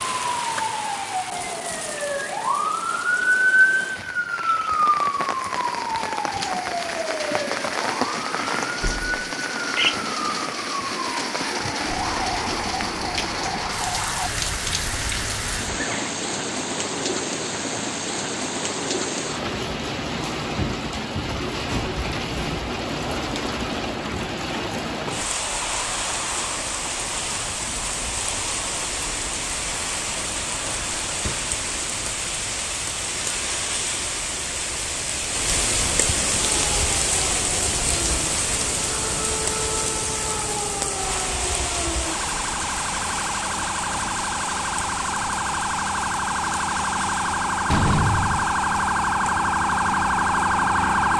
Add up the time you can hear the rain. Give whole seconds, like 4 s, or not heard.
51 s.